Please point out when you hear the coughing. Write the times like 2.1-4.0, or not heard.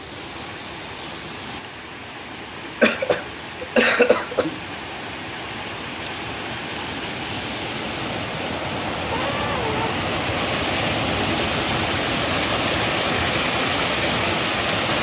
2.8-4.5, 9.1-9.9.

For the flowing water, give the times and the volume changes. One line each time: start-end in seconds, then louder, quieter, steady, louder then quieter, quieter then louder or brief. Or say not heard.
0.0-14.9 louder.